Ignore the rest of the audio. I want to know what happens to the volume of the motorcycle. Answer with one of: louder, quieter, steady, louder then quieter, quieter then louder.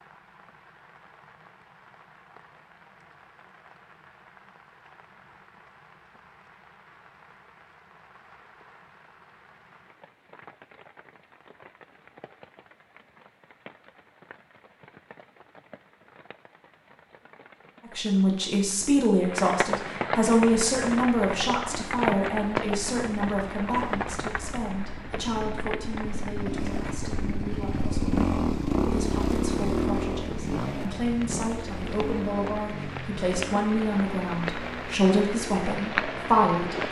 louder then quieter.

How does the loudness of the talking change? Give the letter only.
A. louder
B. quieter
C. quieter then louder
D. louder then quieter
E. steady
C.